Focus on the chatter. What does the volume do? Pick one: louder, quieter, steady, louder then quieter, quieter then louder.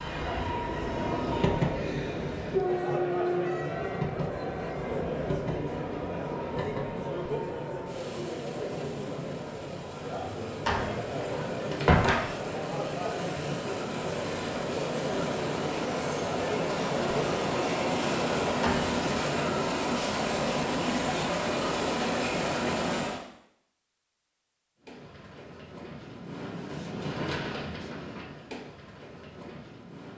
steady.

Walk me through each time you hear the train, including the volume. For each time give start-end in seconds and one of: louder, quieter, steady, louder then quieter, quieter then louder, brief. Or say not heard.
0.0-23.2 quieter then louder
24.8-30.1 louder then quieter.